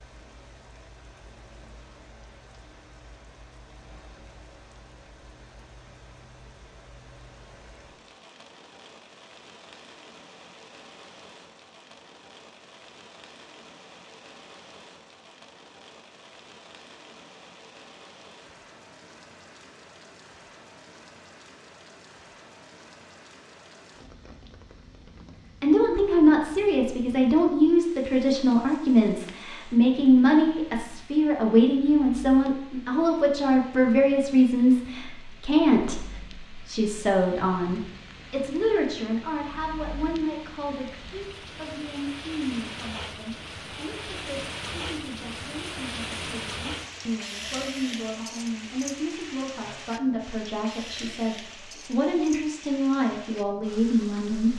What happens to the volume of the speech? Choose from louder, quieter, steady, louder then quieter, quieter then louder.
quieter then louder.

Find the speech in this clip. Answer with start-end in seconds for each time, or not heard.
25.6-54.5.